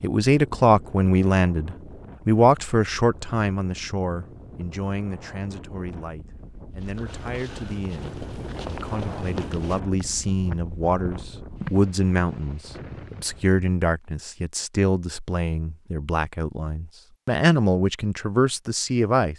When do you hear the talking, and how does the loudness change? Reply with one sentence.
The talking can be heard from 0.0 to 19.3 s, getting quieter then louder.